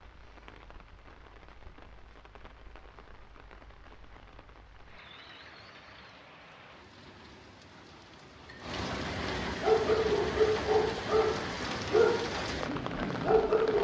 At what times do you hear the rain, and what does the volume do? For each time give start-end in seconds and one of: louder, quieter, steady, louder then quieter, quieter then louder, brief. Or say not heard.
0.0-13.7 louder.